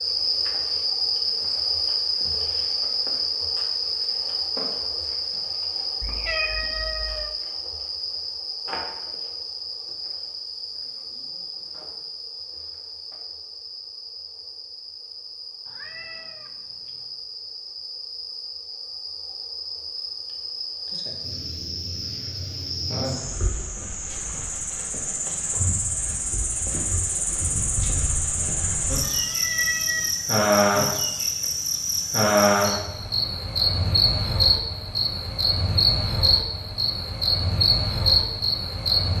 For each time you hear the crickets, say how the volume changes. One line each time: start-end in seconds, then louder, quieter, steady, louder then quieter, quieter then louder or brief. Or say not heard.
0.0-39.1 quieter then louder.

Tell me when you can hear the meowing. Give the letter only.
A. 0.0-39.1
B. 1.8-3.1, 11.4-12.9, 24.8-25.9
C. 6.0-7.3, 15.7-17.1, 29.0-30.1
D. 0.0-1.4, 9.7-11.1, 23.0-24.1
C.